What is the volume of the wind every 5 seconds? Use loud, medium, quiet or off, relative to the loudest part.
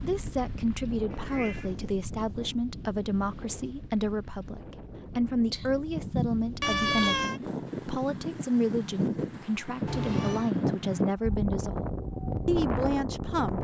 medium, medium, loud.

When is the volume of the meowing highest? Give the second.
7 s.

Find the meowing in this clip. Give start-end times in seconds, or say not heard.
1.1-2.5, 5.5-7.4, 9.8-10.5.